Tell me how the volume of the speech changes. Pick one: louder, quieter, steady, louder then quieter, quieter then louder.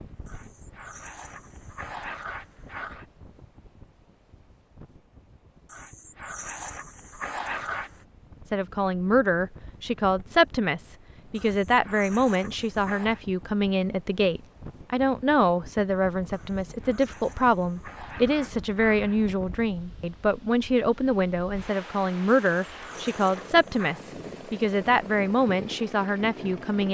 steady.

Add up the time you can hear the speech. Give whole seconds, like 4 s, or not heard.
18 s.